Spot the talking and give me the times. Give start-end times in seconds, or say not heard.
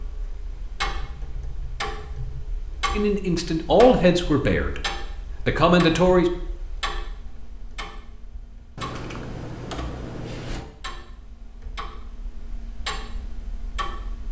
2.9-6.3.